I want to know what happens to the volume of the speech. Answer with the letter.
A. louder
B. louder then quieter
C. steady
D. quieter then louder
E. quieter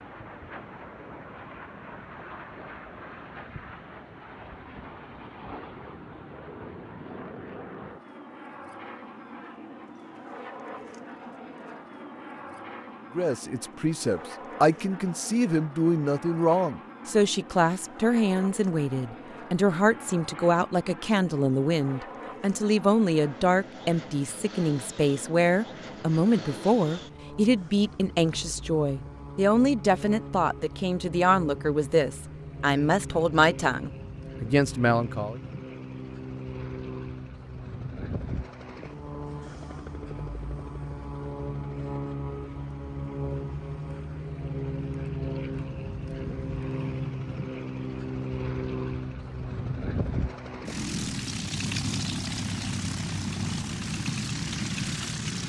C.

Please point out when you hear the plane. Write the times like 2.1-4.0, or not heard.
0.0-55.4.